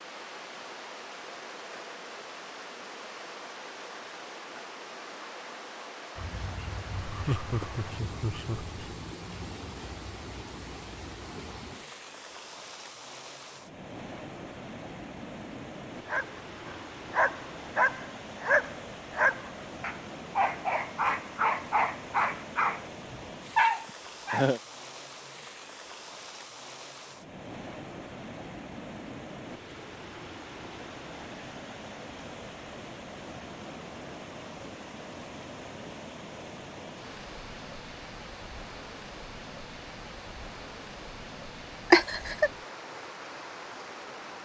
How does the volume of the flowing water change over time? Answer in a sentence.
The volume of the flowing water stays about the same.